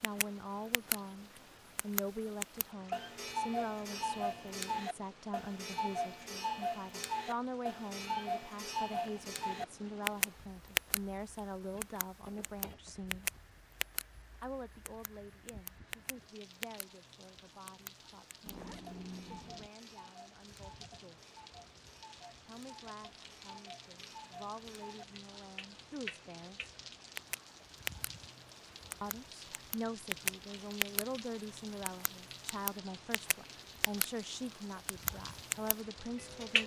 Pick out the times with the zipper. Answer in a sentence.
The zipper can be heard from 18.4 to 19.7 s.